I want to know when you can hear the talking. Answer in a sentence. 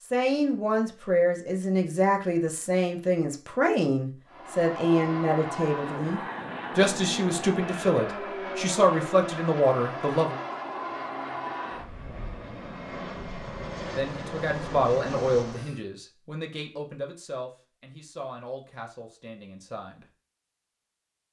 The talking can be heard from 0.0 to 10.4 s and from 13.9 to 20.1 s.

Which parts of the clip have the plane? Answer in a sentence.
The plane can be heard from 4.2 to 15.8 s.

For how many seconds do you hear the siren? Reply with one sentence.
The siren can't be heard in this clip.